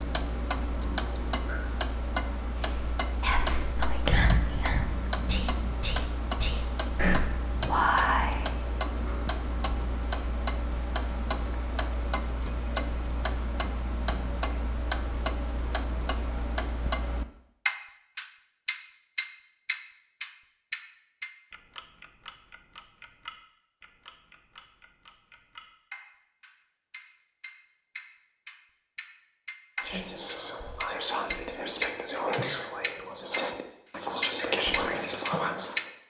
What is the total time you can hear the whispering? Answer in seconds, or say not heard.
12 s.